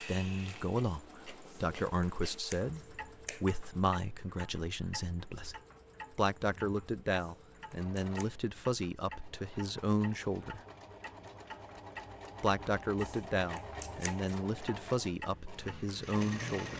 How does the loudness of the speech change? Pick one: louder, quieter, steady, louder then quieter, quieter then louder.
steady.